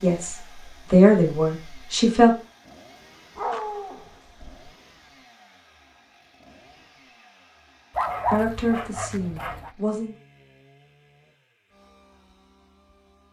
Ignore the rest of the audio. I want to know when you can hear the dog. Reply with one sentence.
You can hear the dog from 3.4 to 4.7 s and from 8.0 to 9.7 s.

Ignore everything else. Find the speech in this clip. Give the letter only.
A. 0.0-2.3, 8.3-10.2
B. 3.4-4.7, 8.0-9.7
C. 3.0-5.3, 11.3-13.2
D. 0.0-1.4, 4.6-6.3
A.